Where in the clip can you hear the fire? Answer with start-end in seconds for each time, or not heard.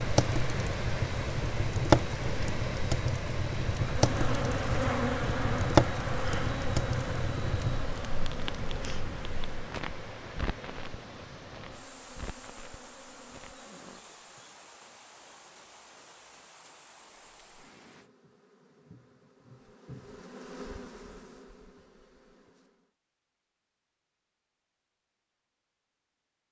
0.0-13.7.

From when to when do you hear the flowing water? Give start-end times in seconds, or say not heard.
0.0-18.1.